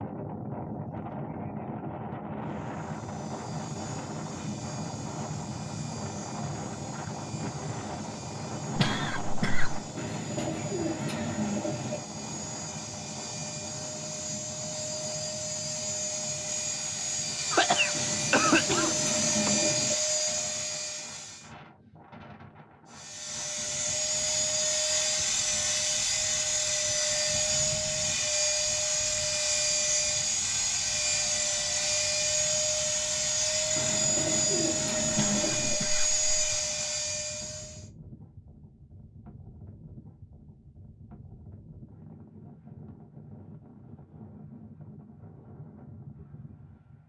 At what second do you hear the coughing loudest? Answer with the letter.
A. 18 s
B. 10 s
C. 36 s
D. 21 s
A.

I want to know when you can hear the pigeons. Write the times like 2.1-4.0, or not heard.
9.9-12.0, 17.9-19.9, 33.8-35.8.